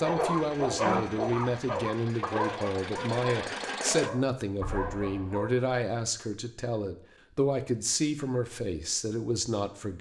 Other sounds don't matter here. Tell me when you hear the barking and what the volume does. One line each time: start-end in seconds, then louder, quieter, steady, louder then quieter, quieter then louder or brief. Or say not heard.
0.0-5.5 quieter.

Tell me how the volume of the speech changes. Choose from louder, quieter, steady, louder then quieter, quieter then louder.
steady.